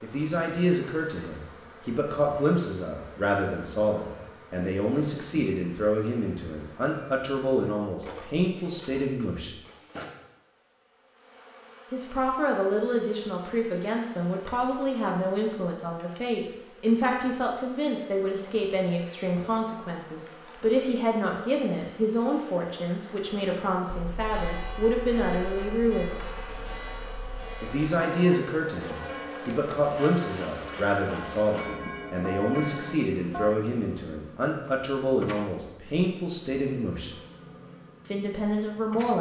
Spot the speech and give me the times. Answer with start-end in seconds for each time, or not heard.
0.0-9.5, 11.9-26.1, 27.6-37.1, 38.0-39.1.